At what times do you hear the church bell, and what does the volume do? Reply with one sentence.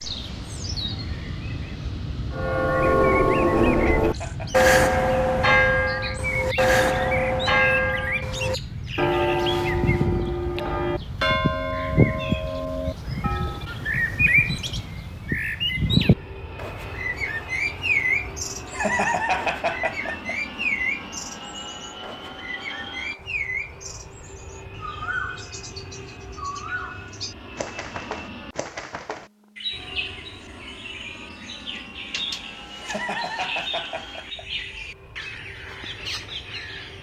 You can hear the church bell from 2.3 to 13.7 s, getting quieter.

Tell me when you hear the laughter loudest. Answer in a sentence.
The loudest moment of the laughter is at 19 seconds.